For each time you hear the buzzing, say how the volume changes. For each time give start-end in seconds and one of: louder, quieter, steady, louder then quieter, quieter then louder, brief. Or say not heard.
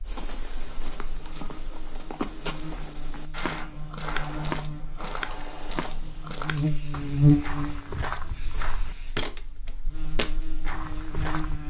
0.0-11.6 louder then quieter.